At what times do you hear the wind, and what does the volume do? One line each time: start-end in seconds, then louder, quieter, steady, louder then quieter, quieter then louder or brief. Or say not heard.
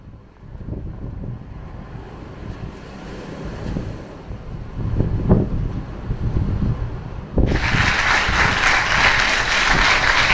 0.0-10.2 louder then quieter.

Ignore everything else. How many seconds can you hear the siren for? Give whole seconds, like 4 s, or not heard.
not heard.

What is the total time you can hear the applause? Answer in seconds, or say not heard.
3 s.